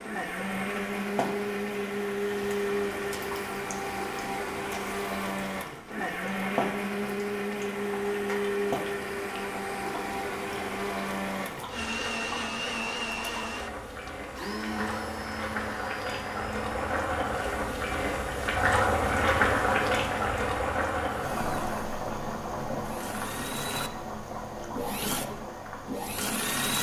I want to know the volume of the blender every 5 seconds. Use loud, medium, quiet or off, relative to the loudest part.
loud, loud, loud, medium, medium, loud.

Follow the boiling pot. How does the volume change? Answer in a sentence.
The loudness of the boiling pot goes up, then down.